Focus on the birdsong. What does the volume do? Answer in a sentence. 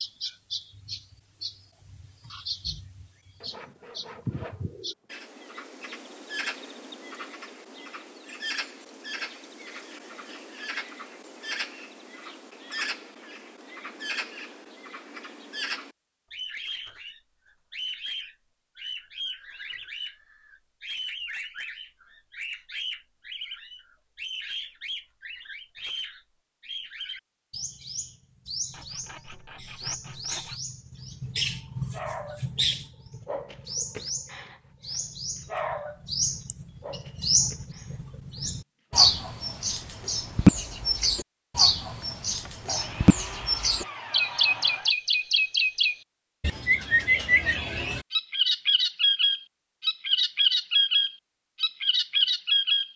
The volume of the birdsong goes up.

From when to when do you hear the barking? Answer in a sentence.
The barking can be heard from 31.9 to 32.5 s, from 33.2 to 34.5 s, from 35.5 to 36.0 s and from 36.8 to 39.1 s.